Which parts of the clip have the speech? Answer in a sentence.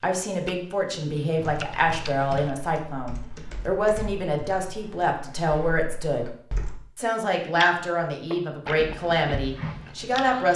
You can hear the speech from 0.0 to 6.2 s and from 7.0 to 10.5 s.